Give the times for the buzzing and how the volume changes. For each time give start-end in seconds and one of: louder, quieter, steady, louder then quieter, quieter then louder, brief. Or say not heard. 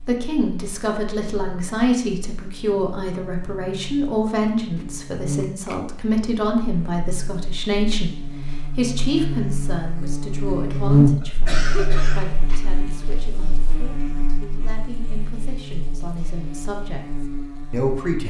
0.0-18.2 louder then quieter.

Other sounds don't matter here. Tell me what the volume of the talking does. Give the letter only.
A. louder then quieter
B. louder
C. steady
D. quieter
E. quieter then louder
D.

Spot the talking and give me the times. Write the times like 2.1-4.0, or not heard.
0.0-18.2.